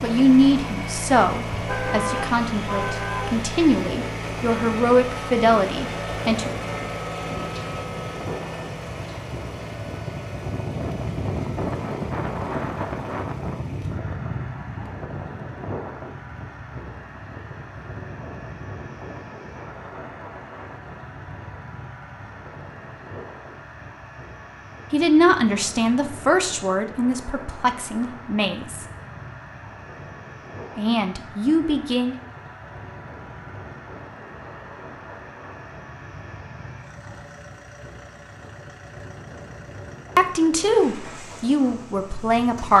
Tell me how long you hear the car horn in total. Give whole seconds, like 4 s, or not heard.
2 s.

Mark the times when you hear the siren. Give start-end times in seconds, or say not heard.
not heard.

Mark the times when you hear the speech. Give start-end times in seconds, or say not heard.
0.0-6.5, 24.9-28.9, 30.8-32.1, 40.1-42.7.